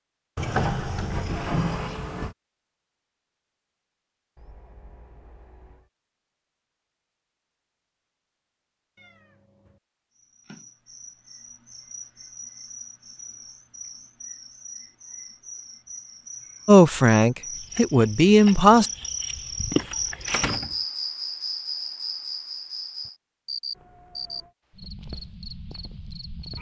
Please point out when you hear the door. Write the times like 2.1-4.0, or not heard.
0.3-2.4, 20.3-20.8.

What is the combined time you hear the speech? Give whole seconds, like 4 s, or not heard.
2 s.